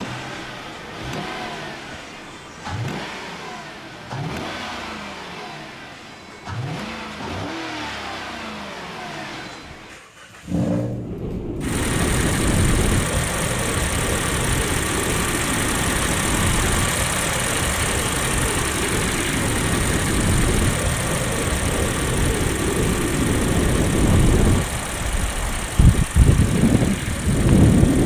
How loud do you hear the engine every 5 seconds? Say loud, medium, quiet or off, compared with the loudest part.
medium, medium, loud, loud, loud, medium.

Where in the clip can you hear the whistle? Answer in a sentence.
The whistle can't be heard in this clip.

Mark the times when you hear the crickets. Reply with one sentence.
You can't hear the crickets here.